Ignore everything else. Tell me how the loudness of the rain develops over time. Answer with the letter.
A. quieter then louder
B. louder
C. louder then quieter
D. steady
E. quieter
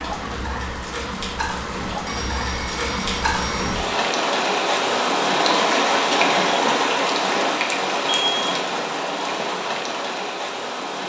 C.